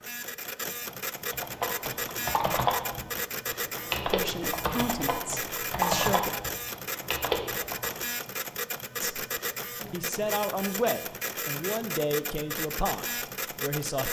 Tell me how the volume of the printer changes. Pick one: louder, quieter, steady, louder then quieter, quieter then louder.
steady.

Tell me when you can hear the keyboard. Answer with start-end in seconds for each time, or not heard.
1.2-8.0.